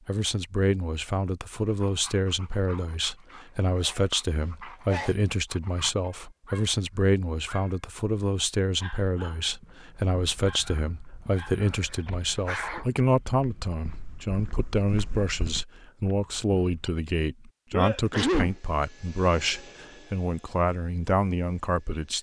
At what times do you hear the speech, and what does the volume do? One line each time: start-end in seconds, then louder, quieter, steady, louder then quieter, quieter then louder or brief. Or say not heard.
0.1-22.1 steady.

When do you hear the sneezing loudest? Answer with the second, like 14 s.
18 s.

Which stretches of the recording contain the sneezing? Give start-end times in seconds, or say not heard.
3.8-5.2, 12.4-12.8, 17.7-18.6.